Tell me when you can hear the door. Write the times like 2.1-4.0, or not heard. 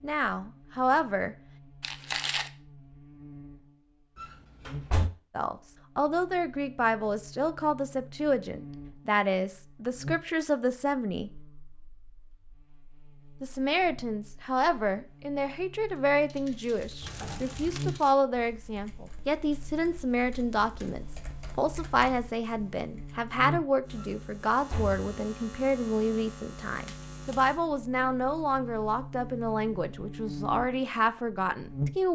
4.2-5.1, 17.0-17.8, 23.9-25.0.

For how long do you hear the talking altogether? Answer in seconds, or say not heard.
26 s.